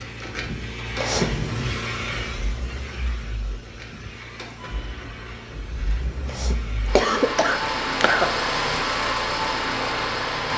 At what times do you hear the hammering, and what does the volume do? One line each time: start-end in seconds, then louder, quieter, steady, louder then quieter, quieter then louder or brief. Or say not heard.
not heard.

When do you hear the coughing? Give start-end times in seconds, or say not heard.
0.9-1.5, 6.2-8.2.